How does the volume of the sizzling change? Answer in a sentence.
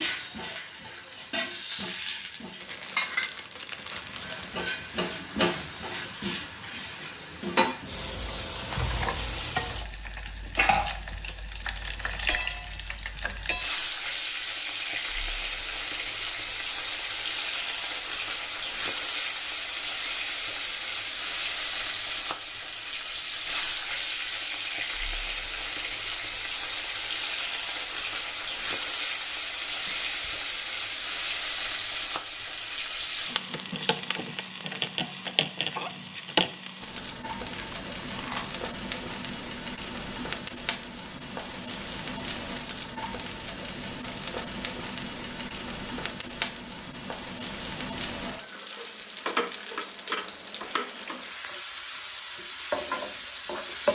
The loudness of the sizzling stays about the same.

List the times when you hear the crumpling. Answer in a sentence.
You can hear the crumpling from 2.6 to 4.7 s, from 29.8 to 30.4 s and from 37.5 to 38.5 s.